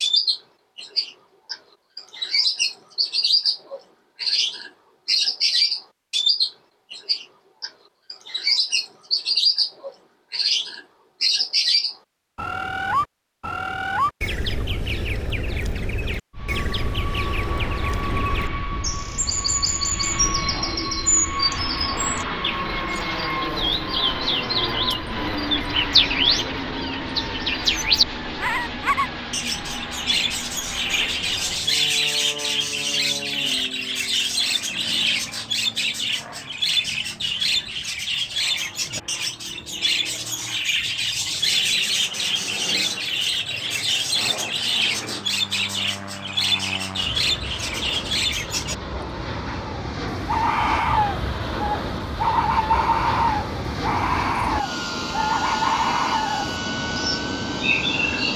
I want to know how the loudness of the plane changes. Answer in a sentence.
The volume of the plane goes down, then up.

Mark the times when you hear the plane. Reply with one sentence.
The plane can be heard from 16.3 to 58.3 s.